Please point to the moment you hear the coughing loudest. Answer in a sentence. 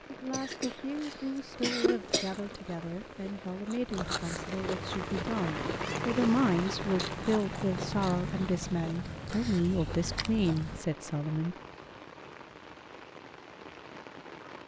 The volume of the coughing peaks at 2 seconds.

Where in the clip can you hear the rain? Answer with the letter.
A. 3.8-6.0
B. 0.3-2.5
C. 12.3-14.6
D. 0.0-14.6
D.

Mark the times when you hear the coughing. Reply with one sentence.
You can hear the coughing from 0.3 to 2.5 s.